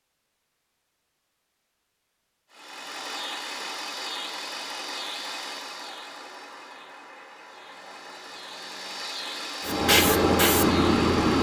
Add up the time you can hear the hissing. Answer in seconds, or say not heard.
2 s.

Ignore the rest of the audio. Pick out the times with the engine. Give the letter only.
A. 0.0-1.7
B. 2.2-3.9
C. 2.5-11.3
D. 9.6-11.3
C.